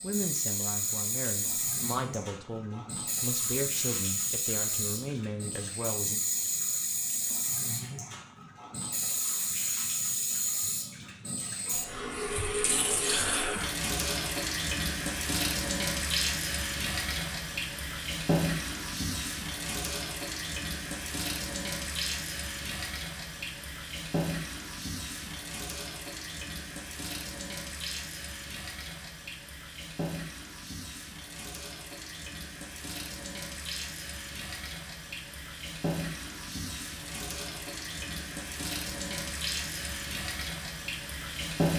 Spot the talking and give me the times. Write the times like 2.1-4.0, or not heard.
0.0-6.2.